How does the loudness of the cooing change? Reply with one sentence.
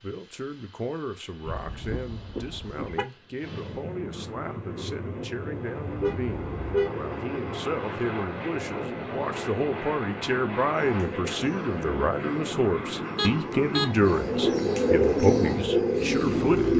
The loudness of the cooing goes up.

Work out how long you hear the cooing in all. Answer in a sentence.
The cooing can be heard for 6 seconds in total.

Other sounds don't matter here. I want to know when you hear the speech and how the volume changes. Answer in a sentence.
The speech can be heard from 0.0 to 16.7 s, getting louder.